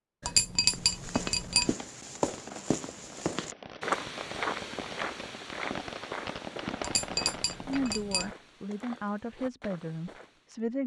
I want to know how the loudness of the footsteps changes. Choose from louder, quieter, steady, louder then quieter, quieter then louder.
quieter.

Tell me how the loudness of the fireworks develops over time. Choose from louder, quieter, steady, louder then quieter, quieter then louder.
louder.